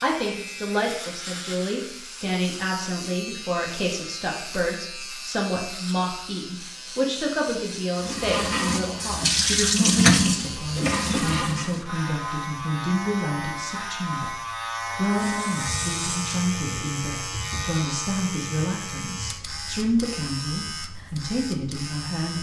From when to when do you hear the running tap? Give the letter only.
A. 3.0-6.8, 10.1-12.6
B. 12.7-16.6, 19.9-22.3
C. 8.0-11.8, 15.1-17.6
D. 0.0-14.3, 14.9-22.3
C.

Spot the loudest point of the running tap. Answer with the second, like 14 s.
10 s.